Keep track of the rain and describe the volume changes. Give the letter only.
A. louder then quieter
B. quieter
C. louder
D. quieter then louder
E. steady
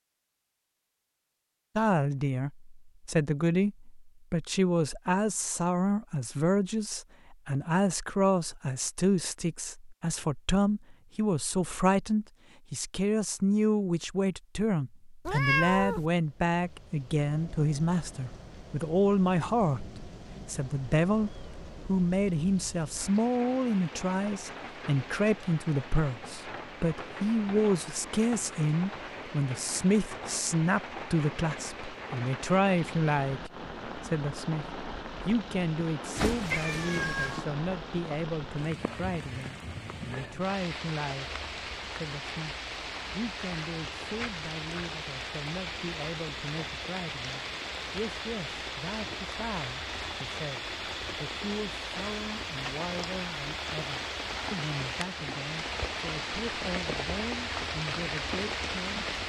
C.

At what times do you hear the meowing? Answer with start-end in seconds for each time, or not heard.
15.2-16.1, 36.1-37.5.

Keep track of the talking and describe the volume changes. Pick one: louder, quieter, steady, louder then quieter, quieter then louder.
quieter.